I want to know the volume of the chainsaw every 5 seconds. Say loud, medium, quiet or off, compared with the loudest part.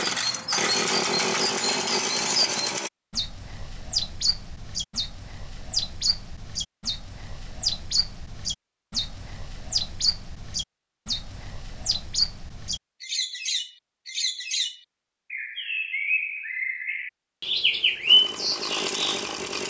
loud, off, off, medium.